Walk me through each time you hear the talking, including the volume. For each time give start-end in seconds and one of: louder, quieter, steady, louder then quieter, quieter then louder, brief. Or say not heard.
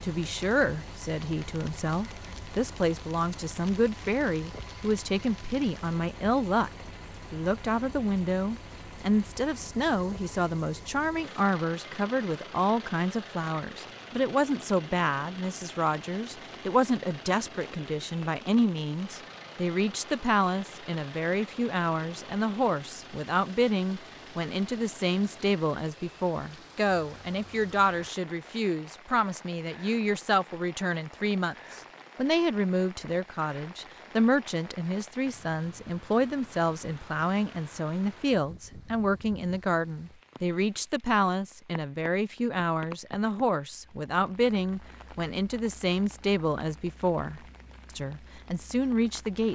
0.0-49.4 steady.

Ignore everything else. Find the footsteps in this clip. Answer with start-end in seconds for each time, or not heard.
not heard.